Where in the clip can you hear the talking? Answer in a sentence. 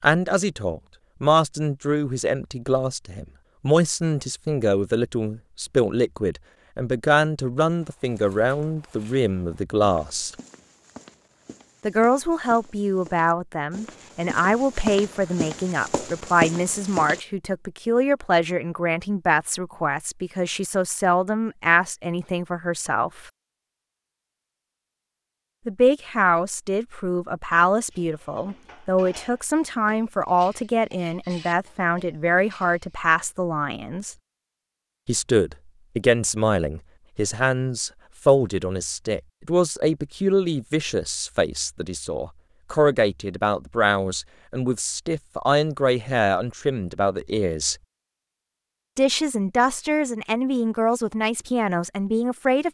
You can hear the talking from 0.0 to 10.3 s, from 11.8 to 23.1 s, from 25.6 to 34.1 s, from 35.0 to 47.8 s and from 49.0 to 52.6 s.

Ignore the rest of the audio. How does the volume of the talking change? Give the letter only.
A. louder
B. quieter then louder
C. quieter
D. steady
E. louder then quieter
D.